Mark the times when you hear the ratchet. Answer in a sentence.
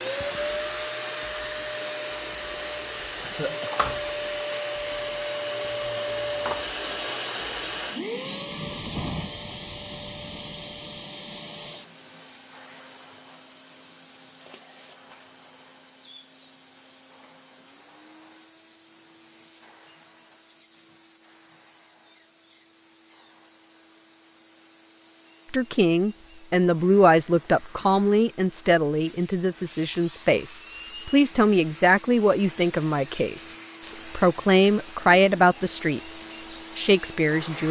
The ratchet can't be heard in this clip.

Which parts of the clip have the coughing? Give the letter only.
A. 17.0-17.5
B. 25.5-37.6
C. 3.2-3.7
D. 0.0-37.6
C.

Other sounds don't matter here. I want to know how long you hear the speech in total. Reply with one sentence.
The speech can be heard for 12 seconds in total.